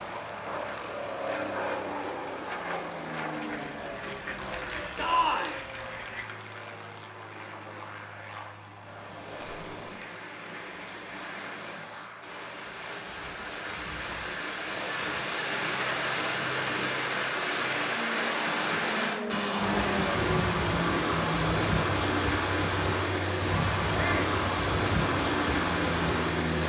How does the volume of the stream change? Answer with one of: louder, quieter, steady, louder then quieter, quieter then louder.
louder.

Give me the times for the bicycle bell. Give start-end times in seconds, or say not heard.
not heard.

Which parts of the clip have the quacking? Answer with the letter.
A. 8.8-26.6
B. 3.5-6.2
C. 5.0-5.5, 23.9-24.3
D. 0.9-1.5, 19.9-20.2
B.